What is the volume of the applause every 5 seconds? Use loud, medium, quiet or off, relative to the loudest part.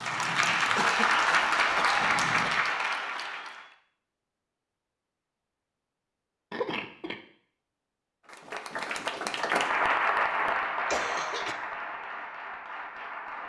loud, loud, medium.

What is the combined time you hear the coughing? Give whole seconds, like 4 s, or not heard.
3 s.